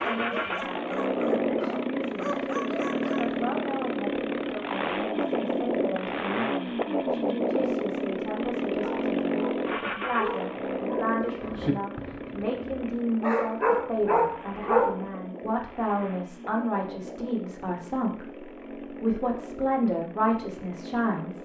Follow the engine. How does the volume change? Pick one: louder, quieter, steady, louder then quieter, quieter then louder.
quieter.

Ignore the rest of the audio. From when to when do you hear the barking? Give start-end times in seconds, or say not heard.
0.0-3.4, 8.8-15.1.